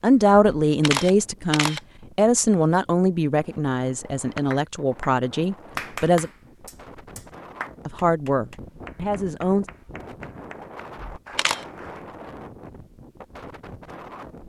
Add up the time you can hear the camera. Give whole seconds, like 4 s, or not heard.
2 s.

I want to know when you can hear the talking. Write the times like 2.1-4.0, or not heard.
0.0-6.3, 7.8-9.7.